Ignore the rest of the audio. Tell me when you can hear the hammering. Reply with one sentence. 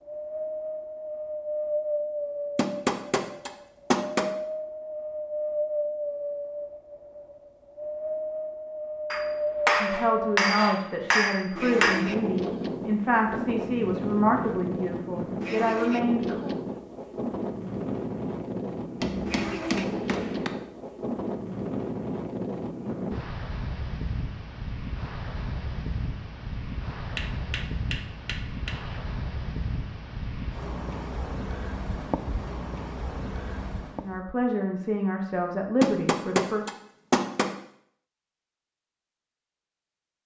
The hammering can be heard from 2.5 to 4.3 s, from 9.1 to 12.1 s, from 19.0 to 20.5 s, from 27.1 to 29.0 s and from 35.8 to 37.5 s.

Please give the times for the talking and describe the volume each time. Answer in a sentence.
You can hear the talking from 9.8 to 16.5 s, at a steady volume; and briefly from 34.0 to 36.6 s.